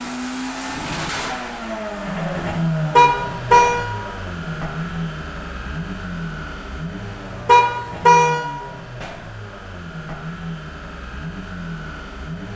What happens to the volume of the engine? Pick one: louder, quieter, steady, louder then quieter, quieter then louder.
quieter.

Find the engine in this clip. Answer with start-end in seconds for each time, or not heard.
0.0-12.5.